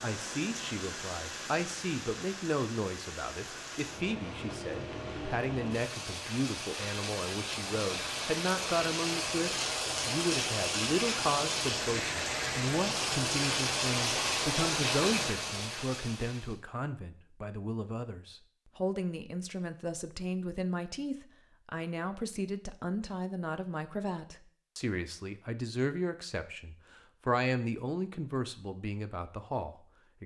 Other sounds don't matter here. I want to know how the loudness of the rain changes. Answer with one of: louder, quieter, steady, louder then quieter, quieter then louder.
louder.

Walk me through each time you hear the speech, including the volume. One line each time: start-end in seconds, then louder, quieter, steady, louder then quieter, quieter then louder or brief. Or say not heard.
0.0-30.2 steady.